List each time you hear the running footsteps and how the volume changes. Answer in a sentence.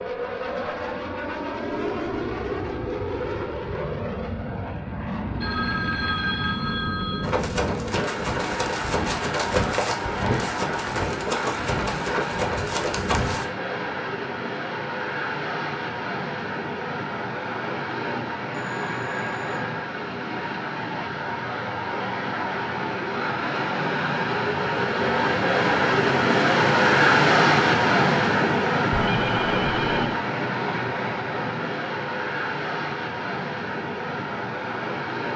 The running footsteps can be heard from 7.2 to 13.4 s, at a steady volume.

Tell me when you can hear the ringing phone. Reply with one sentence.
The ringing phone can be heard from 5.4 to 7.2 s, from 18.6 to 19.7 s and from 28.9 to 30.1 s.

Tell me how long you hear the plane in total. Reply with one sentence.
The plane can be heard for 35 seconds in total.